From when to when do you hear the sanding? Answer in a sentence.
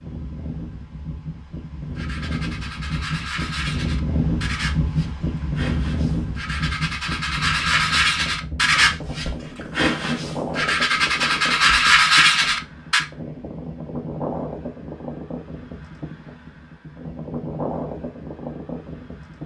The sanding can be heard from 1.9 to 13.1 s.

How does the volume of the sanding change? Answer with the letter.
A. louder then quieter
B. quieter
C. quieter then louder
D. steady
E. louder
E.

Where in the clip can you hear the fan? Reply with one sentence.
The fan can be heard from 0.0 to 19.4 s.